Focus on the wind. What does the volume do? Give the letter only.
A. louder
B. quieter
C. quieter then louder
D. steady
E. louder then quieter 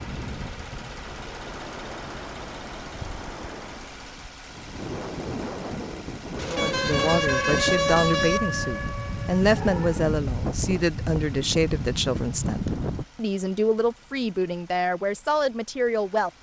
A.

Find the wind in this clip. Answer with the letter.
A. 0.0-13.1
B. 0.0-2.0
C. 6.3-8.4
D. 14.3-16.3
A.